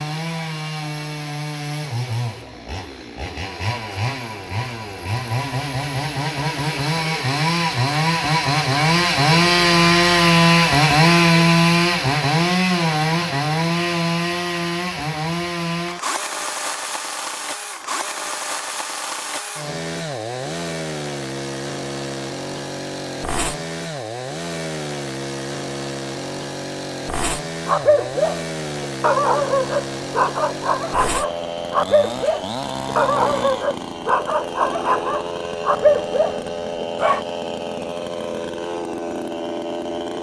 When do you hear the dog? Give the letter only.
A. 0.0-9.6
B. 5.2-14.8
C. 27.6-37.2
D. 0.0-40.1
C.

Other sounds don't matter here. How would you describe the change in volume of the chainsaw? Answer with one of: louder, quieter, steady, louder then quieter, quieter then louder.
louder then quieter.